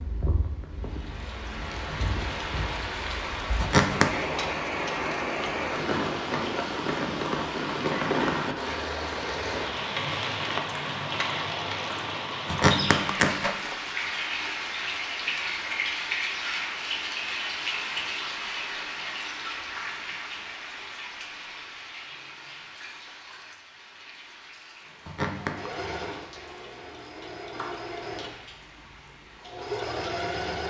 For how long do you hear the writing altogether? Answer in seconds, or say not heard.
not heard.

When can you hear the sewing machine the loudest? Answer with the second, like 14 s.
30 s.